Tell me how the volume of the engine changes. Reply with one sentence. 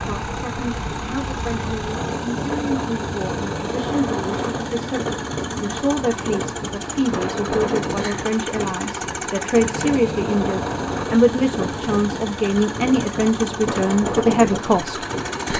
The volume of the engine stays about the same.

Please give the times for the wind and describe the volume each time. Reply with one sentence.
You can hear the wind from 0.0 to 15.4 s, at a steady volume.